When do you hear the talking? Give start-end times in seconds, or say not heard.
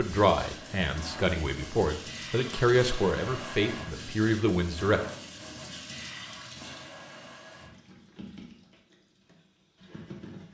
0.0-5.0.